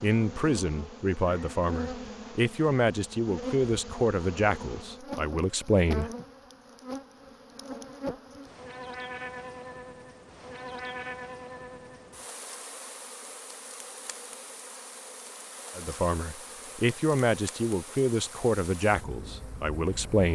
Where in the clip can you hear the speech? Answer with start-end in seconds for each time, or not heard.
0.0-6.1, 15.8-20.3.